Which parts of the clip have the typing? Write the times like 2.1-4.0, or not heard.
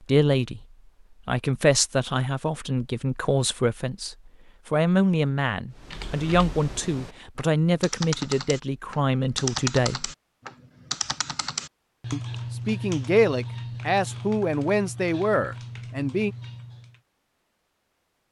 5.8-17.0.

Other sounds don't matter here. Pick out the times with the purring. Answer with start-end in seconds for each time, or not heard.
not heard.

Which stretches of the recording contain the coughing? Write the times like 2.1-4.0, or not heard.
not heard.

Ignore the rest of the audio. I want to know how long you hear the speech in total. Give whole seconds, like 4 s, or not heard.
14 s.